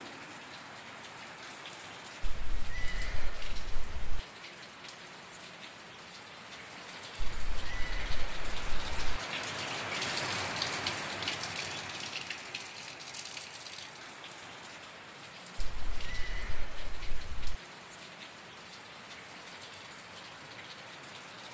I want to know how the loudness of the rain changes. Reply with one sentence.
The volume of the rain goes up, then down.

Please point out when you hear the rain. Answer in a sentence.
The rain can be heard from 0.0 to 21.4 s.